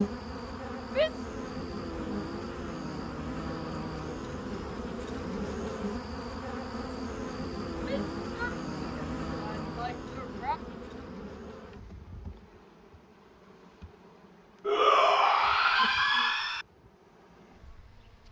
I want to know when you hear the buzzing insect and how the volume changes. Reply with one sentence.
You can hear the buzzing insect from 0.0 to 18.2 s, getting quieter.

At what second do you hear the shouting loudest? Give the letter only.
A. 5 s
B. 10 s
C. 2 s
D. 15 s
D.